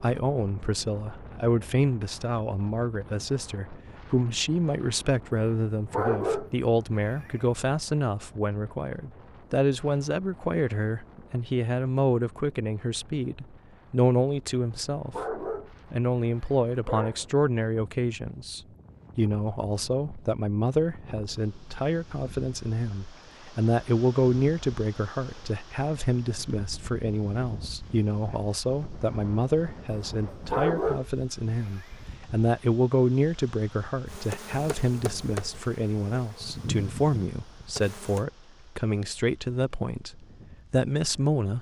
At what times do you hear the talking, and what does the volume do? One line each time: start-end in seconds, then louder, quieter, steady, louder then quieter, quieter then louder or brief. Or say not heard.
0.0-41.5 steady.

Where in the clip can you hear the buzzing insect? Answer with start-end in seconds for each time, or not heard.
34.0-38.2.